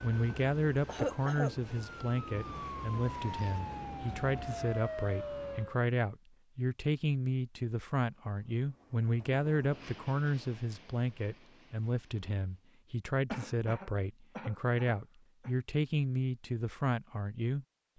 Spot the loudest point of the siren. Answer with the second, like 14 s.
5 s.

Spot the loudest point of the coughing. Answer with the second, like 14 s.
1 s.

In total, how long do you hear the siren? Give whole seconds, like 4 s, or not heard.
6 s.